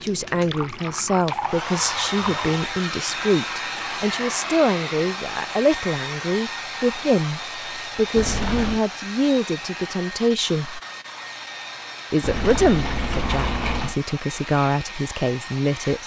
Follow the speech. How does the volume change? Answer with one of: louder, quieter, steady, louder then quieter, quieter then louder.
steady.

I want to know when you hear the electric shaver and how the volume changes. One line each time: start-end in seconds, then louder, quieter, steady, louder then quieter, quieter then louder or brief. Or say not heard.
not heard.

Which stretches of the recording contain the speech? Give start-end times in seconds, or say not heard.
0.0-10.8, 12.1-16.0.